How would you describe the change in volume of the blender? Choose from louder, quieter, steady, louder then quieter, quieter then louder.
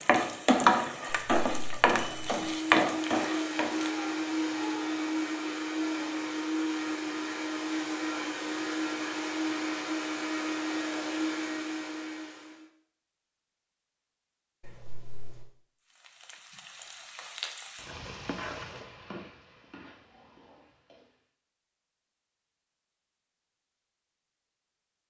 steady.